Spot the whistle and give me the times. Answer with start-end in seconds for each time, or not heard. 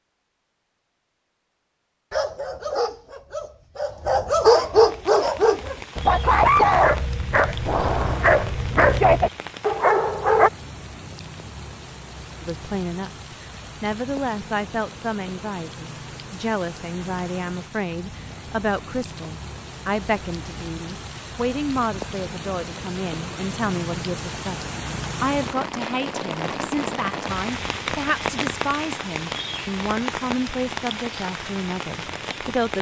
not heard.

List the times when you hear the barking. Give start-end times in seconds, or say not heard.
2.1-10.5.